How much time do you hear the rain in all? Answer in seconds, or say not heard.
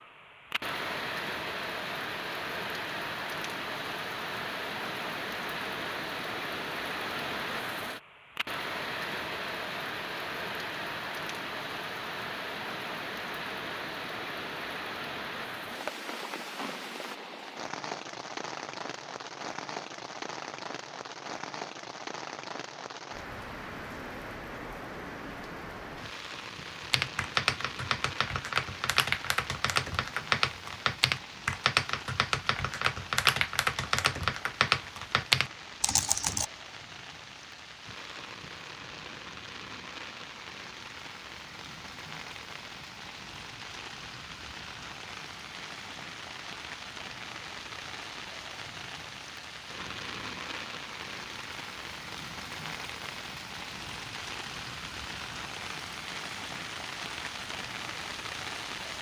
59 s.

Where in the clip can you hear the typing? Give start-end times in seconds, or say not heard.
26.8-36.5.